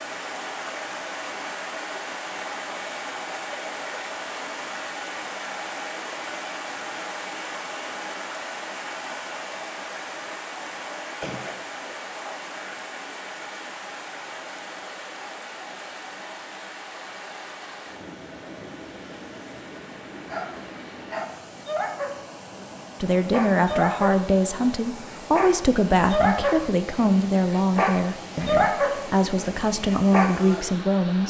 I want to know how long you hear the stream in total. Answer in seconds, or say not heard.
31 s.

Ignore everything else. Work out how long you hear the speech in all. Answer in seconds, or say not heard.
8 s.